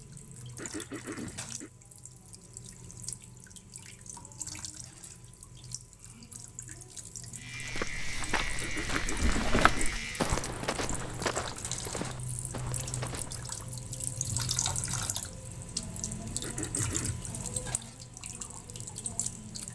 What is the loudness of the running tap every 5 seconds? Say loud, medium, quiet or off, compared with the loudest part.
medium, medium, loud, loud.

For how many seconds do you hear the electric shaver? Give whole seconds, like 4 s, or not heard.
3 s.